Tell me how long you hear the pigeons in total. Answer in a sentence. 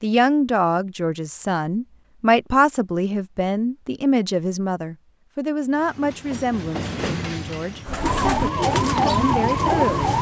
The pigeons can be heard for 2 seconds in total.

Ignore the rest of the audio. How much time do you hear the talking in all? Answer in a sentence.
The talking can be heard for 10 seconds in total.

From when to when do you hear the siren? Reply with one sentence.
The siren can be heard from 8.0 to 10.1 s.